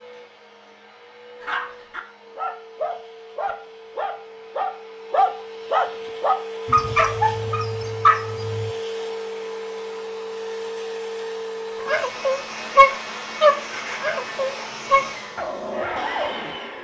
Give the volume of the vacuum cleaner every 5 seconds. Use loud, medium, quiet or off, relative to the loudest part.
quiet, loud, loud, loud.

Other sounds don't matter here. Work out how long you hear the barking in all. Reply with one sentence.
The barking can be heard for 12 seconds in total.